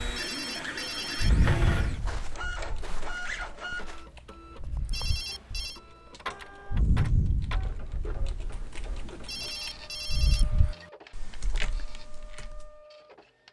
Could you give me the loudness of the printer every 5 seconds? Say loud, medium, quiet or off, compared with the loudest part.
loud, medium, quiet.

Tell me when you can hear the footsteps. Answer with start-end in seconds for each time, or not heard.
1.8-4.0.